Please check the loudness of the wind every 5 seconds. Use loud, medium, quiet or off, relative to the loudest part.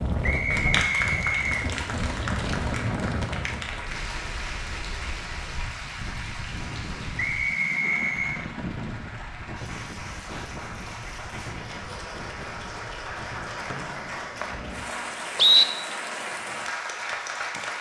loud, medium, medium, off.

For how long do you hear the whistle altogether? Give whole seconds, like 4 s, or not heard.
5 s.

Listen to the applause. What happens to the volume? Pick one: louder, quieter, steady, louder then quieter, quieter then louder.
quieter then louder.